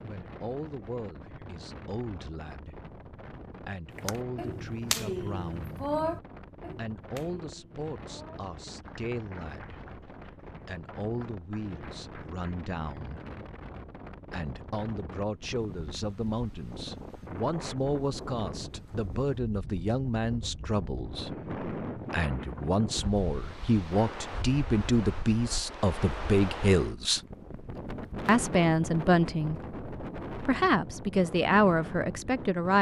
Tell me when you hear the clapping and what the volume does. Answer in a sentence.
The clapping can be heard from 4.0 to 12.4 s, getting quieter.